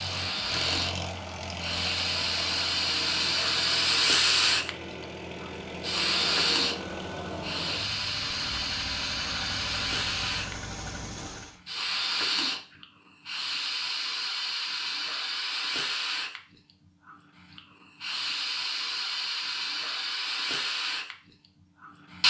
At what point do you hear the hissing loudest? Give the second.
4 s.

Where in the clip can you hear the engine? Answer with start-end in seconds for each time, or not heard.
0.0-11.6.